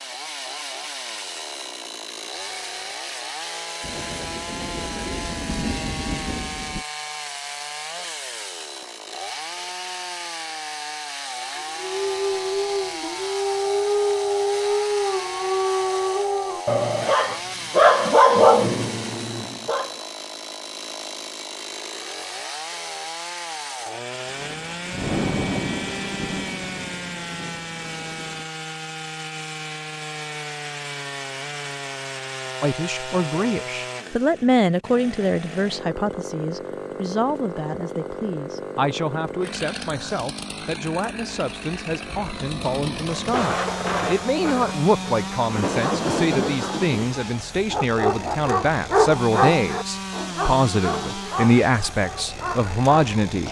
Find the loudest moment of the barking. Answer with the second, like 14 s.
18 s.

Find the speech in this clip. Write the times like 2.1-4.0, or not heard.
32.6-53.4.